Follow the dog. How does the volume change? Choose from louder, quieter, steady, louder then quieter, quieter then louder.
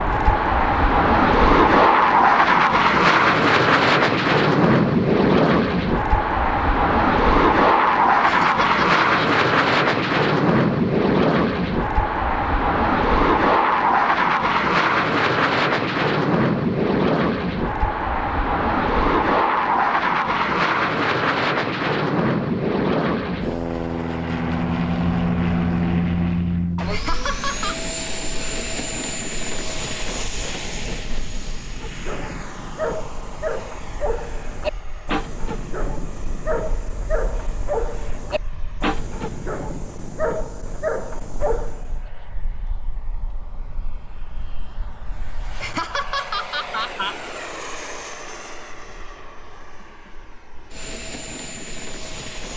steady.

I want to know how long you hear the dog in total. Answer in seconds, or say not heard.
10 s.